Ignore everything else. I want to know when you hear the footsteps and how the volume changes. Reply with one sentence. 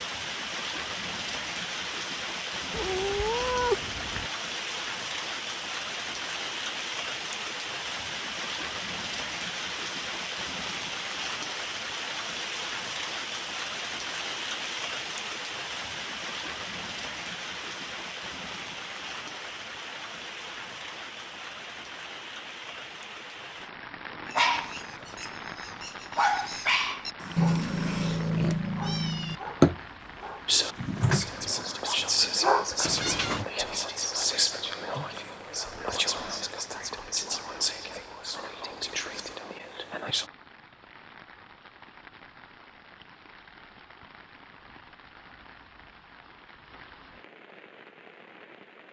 The footsteps can't be heard in this clip.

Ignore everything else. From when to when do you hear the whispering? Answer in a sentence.
The whispering can be heard from 30.4 to 40.3 s.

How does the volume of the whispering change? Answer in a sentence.
The loudness of the whispering goes down.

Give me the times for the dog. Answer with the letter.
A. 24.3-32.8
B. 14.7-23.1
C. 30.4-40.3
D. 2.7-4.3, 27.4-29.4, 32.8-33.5
A.